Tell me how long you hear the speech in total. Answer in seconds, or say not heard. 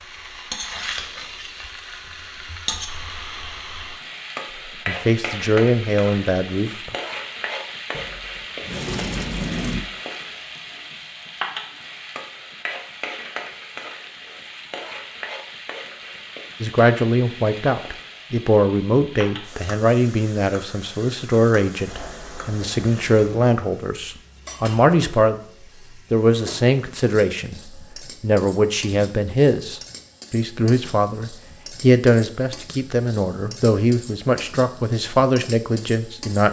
21 s.